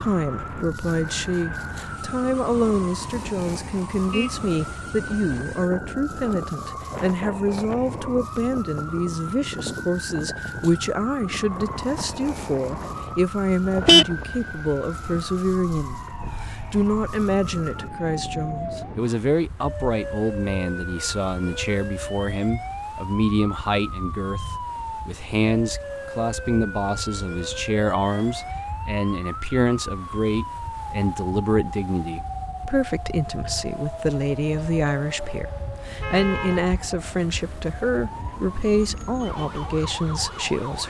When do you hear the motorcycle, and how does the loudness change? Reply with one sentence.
You can't hear the motorcycle here.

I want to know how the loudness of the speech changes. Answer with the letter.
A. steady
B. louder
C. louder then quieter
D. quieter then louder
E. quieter
A.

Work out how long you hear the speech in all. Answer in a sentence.
You can hear the speech for 41 seconds altogether.